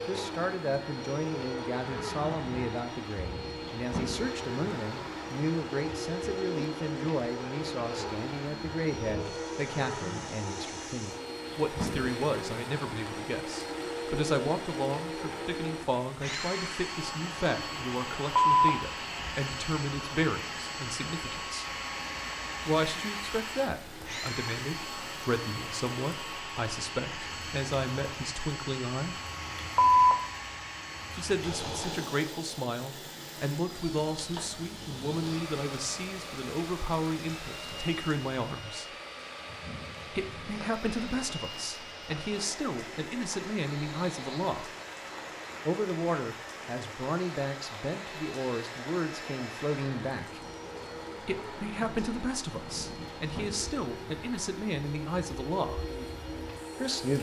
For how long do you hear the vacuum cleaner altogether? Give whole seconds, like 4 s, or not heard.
57 s.